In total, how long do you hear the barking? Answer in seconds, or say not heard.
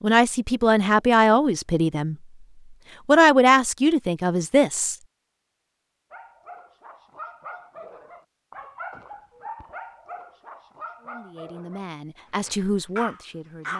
7 s.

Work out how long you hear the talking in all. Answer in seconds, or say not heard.
7 s.